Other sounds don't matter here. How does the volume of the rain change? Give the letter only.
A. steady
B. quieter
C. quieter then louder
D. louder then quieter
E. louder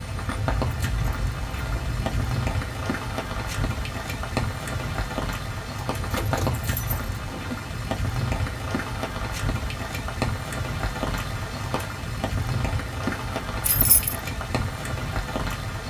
A.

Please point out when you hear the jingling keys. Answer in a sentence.
The jingling keys can be heard from 0.6 to 2.4 s, from 6.0 to 7.6 s and from 13.7 to 14.2 s.